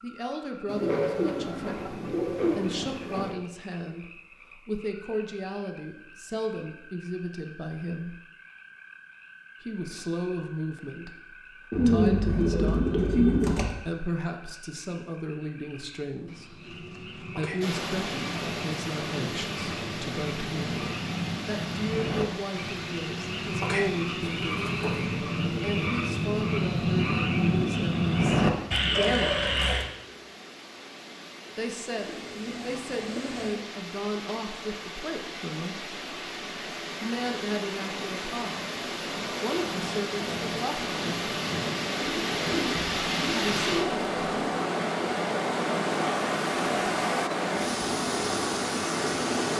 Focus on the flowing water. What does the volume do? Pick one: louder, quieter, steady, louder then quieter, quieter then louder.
quieter then louder.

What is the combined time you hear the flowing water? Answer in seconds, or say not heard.
32 s.